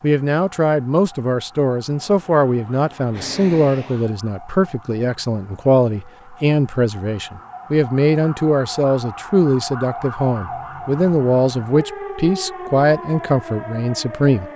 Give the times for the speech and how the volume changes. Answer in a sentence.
You can hear the speech from 0.0 to 14.4 s, at a steady volume.